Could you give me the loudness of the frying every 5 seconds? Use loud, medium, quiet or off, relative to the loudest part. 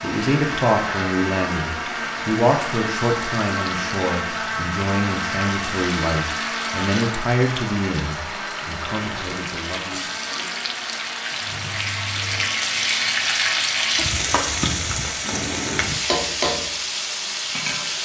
quiet, medium, loud, loud.